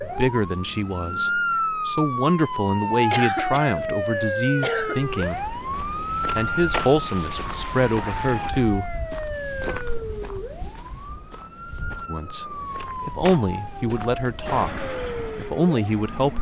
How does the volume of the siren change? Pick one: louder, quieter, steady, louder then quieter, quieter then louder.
quieter.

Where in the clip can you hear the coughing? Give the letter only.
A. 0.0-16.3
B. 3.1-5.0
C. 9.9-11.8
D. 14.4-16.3
B.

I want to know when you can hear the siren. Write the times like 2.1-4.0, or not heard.
0.0-16.3.